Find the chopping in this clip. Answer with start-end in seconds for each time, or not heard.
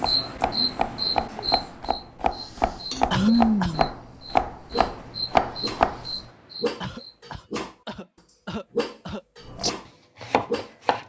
0.0-6.0, 9.6-11.0.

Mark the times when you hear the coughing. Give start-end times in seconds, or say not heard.
3.1-3.8, 6.8-9.2.